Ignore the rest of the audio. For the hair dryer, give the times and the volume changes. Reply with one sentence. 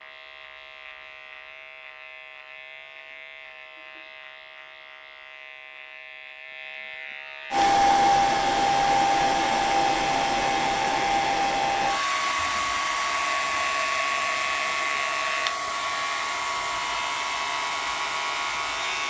You can hear the hair dryer from 7.5 to 19.0 s, getting quieter.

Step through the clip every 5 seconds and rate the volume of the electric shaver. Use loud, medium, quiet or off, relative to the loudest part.
quiet, medium, loud, loud.